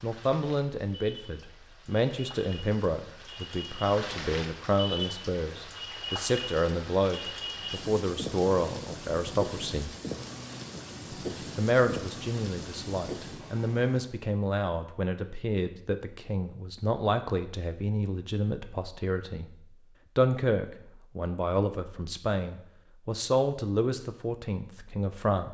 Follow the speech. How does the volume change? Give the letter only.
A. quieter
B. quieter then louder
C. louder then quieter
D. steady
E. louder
D.